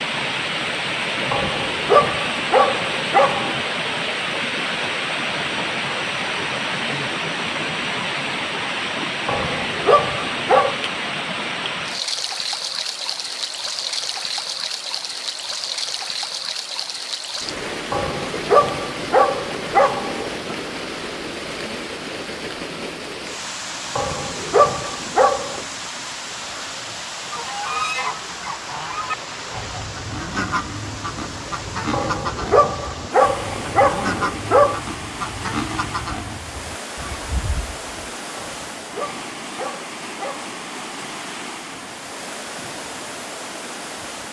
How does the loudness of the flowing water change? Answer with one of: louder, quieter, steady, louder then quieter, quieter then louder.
quieter.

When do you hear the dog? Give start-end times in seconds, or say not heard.
1.3-3.6, 9.2-10.8, 17.9-20.6, 23.9-25.6, 31.9-34.8, 38.4-40.6.